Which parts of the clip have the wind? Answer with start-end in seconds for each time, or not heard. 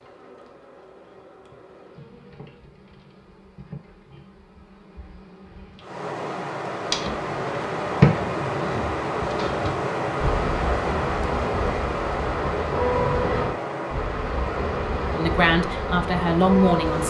5.8-17.0.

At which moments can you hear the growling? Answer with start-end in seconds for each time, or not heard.
12.9-13.6.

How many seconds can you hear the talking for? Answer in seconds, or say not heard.
2 s.